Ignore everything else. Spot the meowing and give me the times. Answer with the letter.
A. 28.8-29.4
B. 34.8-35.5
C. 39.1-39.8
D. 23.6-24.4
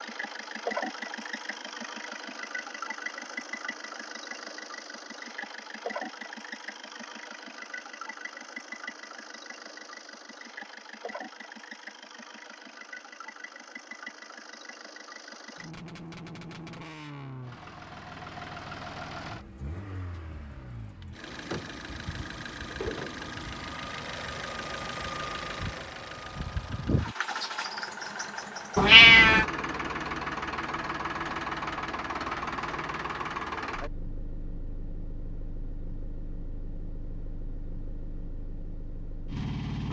A.